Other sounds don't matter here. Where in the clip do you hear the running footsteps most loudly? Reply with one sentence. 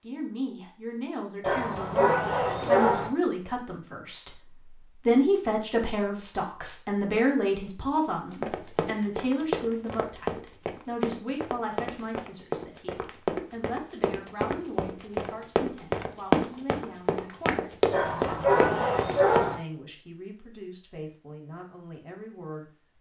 The volume of the running footsteps peaks at 16 seconds.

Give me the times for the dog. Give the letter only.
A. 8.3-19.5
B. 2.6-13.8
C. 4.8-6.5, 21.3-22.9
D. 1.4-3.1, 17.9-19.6
D.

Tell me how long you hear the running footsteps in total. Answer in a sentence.
You can hear the running footsteps for 11 seconds altogether.